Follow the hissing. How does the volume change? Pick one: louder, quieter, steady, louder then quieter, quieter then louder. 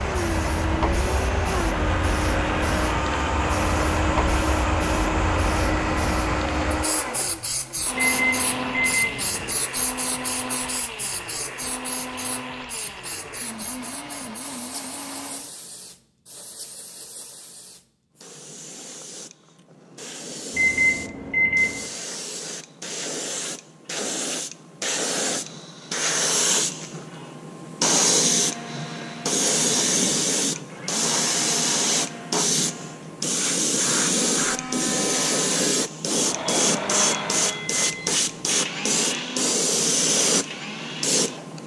quieter then louder.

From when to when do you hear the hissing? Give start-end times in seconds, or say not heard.
0.0-41.6.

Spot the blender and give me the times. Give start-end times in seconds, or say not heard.
0.0-15.6, 28.2-41.5.